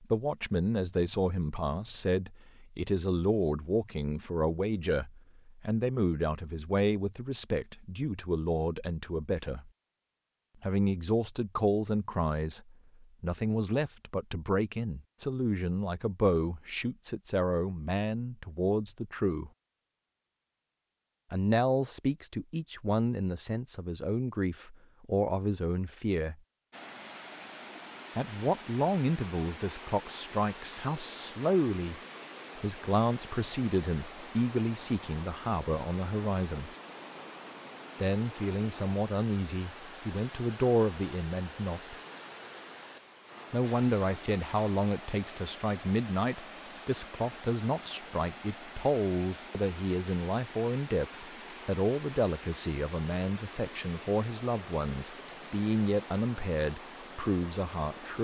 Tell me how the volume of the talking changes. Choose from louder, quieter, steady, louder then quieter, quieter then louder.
steady.